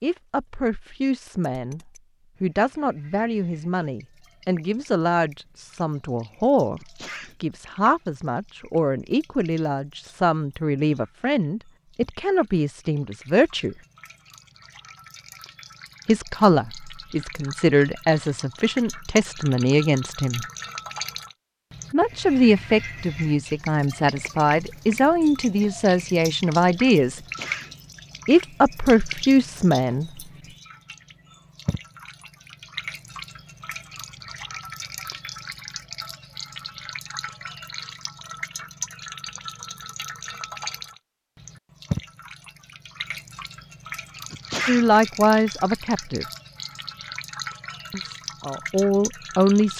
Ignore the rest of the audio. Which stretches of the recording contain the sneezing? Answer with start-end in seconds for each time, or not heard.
6.8-7.3, 27.1-27.8, 44.3-44.9.